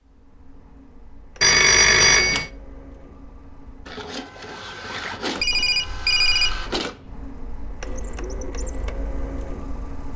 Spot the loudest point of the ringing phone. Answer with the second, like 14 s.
2 s.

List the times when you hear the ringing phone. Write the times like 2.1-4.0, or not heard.
1.4-2.5, 5.4-6.8.